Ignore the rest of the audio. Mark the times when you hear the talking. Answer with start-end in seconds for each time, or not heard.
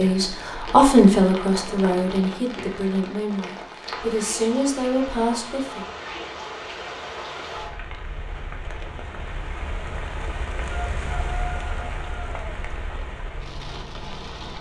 0.0-5.8.